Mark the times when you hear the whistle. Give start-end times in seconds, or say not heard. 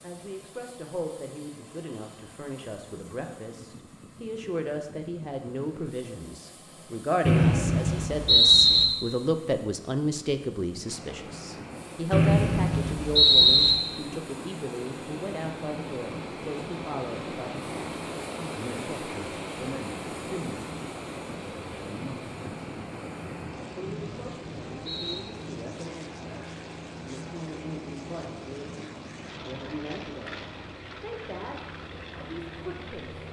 7.2-8.8, 12.1-13.8, 23.8-25.2.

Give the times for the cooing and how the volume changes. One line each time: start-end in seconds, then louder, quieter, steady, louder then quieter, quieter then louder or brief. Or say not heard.
not heard.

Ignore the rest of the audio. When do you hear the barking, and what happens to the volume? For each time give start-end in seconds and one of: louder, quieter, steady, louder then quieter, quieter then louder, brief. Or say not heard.
not heard.